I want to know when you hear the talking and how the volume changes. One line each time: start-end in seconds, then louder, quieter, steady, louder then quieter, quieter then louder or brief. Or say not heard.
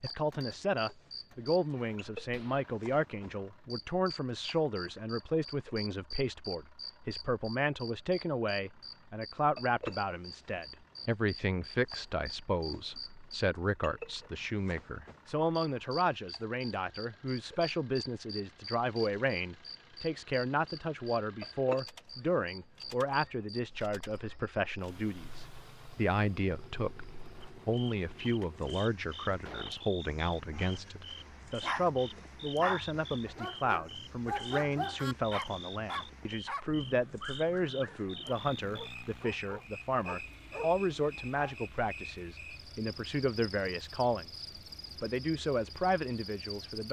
0.0-46.8 steady.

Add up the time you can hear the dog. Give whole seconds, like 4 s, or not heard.
11 s.